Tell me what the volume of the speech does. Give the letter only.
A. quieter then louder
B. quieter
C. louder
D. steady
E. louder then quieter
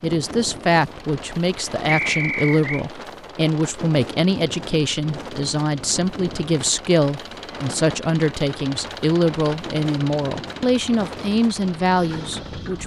D.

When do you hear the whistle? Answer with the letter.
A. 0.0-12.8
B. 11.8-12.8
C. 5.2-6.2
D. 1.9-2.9
D.